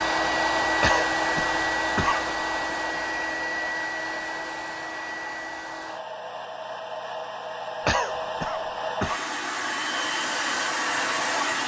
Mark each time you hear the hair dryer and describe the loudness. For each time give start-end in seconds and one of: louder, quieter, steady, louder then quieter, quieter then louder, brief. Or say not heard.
0.0-11.6 quieter then louder.